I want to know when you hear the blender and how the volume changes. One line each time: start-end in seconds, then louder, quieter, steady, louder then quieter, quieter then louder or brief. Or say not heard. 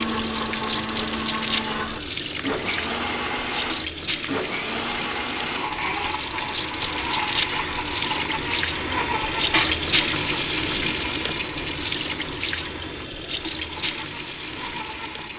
0.0-15.3 quieter.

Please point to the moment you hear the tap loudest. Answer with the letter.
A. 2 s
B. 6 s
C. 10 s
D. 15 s
C.